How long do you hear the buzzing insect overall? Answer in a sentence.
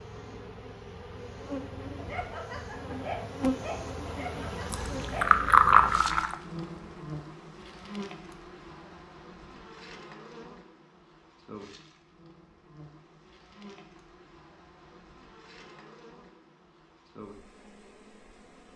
You can hear the buzzing insect for 19 seconds altogether.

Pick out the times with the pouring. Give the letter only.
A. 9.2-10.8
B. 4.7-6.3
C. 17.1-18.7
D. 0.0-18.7
B.